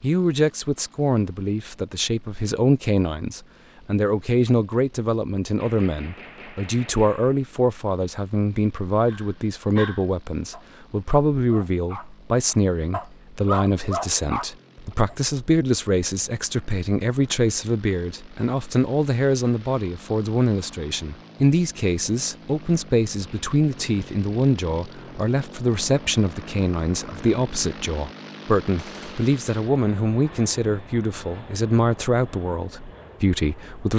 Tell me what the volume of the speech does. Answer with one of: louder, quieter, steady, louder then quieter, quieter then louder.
steady.